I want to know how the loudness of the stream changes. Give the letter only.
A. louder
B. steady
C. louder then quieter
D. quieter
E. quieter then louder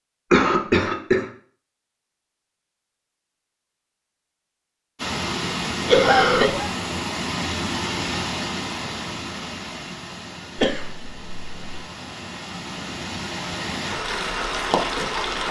E.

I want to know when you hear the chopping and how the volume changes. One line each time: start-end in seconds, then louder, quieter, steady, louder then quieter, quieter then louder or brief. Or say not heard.
not heard.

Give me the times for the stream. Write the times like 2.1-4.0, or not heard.
5.0-15.4.